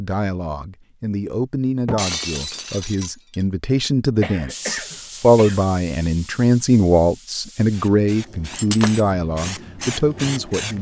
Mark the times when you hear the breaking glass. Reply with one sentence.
The breaking glass can be heard from 1.9 to 3.5 s and from 8.6 to 9.1 s.